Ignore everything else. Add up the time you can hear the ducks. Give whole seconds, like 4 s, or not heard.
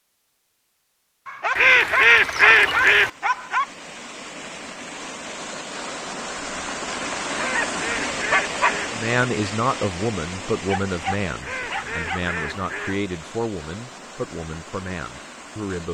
5 s.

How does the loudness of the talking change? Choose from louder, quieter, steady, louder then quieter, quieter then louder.
quieter.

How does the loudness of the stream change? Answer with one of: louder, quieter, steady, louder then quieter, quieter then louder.
louder then quieter.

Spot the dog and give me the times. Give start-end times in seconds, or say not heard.
1.2-3.6, 7.1-8.8, 10.7-12.2.